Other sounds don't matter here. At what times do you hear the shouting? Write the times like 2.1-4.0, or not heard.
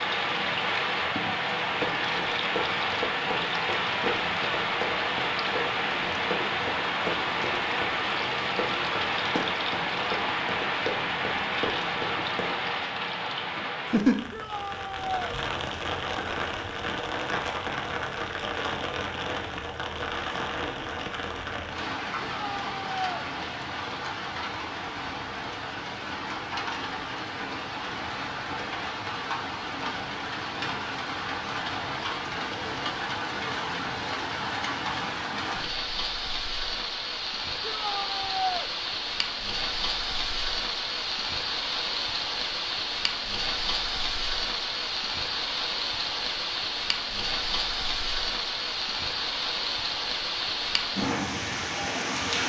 14.3-15.2, 22.2-23.2, 37.6-38.7.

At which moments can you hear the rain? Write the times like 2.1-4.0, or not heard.
0.0-52.4.